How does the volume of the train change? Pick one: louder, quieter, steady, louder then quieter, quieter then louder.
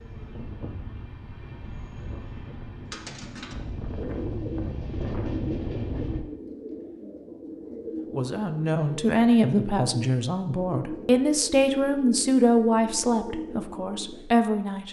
louder.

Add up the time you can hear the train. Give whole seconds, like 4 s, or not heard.
6 s.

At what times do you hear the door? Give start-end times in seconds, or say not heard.
not heard.